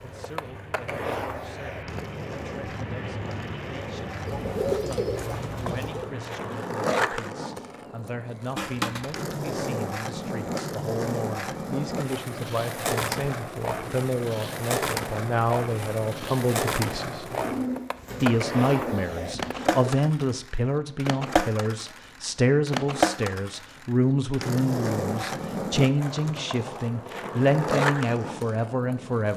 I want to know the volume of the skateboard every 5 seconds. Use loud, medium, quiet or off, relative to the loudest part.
medium, loud, loud, loud, loud, loud.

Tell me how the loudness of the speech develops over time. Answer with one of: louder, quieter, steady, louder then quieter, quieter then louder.
louder.